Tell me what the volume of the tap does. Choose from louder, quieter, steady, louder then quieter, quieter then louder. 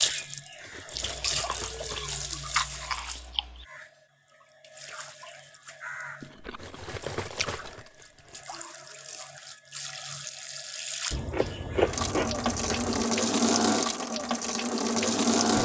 quieter then louder.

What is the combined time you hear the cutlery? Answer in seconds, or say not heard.
6 s.